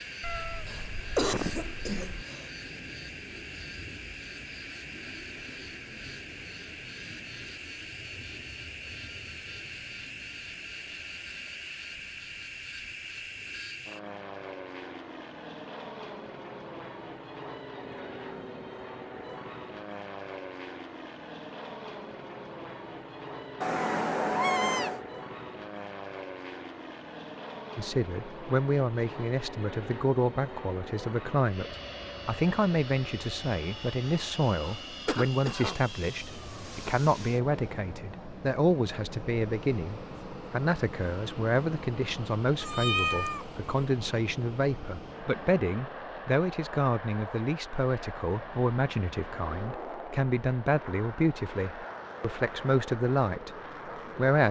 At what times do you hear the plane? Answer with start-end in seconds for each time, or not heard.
0.0-54.4.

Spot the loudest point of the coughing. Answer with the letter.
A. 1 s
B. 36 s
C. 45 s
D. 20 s
A.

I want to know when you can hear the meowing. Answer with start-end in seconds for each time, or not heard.
0.2-2.2, 23.6-25.0, 42.6-43.5.